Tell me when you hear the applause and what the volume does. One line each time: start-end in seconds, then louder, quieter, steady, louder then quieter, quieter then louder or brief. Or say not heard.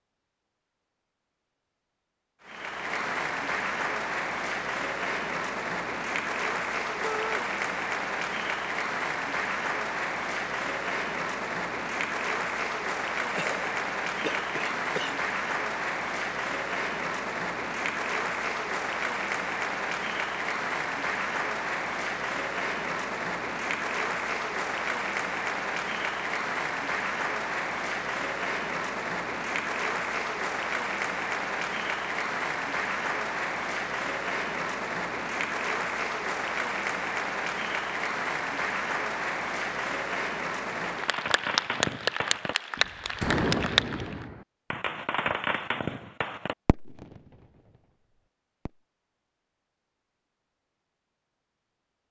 2.4-44.2 steady.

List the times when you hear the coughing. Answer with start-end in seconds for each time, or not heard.
13.3-15.2.